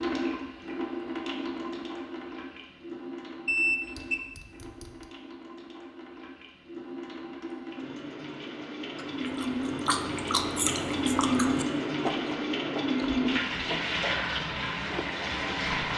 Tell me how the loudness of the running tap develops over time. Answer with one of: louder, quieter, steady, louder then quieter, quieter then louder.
quieter then louder.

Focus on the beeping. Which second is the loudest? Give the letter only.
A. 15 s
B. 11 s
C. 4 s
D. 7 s
C.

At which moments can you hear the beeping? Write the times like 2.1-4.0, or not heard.
3.5-4.9.